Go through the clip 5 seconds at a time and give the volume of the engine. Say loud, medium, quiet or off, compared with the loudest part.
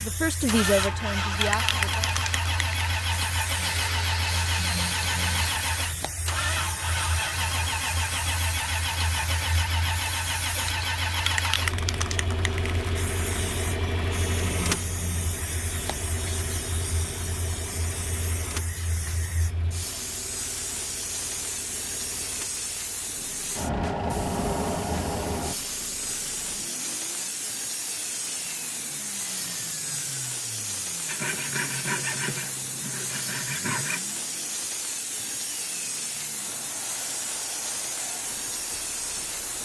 loud, loud, loud, medium, quiet, quiet, quiet, quiet.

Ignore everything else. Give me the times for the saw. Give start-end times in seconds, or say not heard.
3.6-5.6, 31.1-34.0.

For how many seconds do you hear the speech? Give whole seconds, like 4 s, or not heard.
2 s.